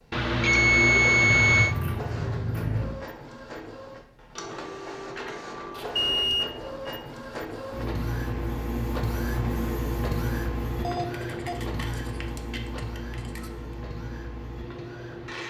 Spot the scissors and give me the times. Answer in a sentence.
The scissors can be heard from 1.4 to 3.0 s, from 5.7 to 6.3 s and from 11.1 to 13.5 s.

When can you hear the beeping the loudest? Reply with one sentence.
The volume of the beeping peaks at 1 second.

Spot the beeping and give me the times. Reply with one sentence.
You can hear the beeping from 0.1 to 1.8 s, from 6.0 to 7.0 s and from 10.8 to 11.6 s.